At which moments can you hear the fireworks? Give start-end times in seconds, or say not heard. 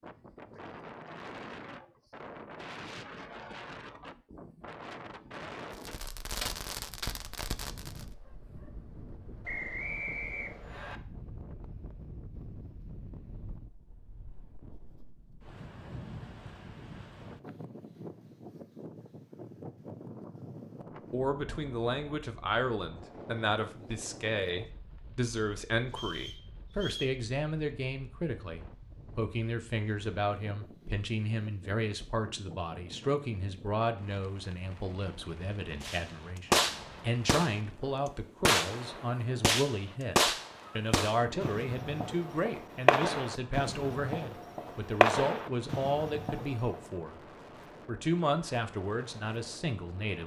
5.7-8.1, 35.8-37.5, 38.5-46.8.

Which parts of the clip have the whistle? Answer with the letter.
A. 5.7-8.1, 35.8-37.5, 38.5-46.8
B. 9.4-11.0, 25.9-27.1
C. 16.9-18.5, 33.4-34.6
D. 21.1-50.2
B.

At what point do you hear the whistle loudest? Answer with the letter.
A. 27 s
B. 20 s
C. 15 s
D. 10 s
D.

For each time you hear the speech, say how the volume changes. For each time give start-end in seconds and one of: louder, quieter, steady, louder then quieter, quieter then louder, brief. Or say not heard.
21.1-50.2 steady.